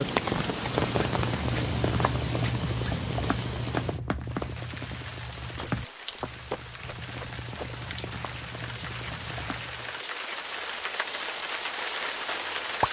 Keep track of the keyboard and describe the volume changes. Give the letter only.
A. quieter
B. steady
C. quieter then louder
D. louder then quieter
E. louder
A.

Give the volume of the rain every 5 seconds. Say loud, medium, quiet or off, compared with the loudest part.
loud, medium, loud.